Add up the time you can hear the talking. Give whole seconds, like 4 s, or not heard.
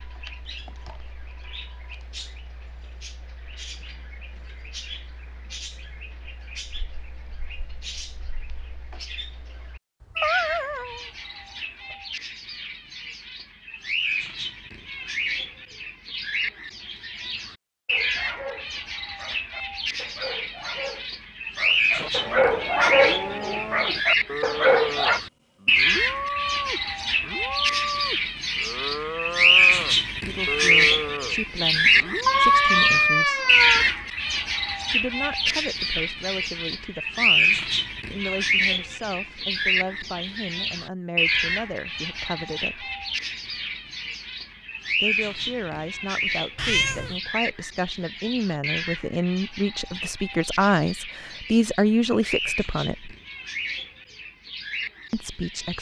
20 s.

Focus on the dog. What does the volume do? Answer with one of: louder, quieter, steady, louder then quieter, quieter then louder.
louder.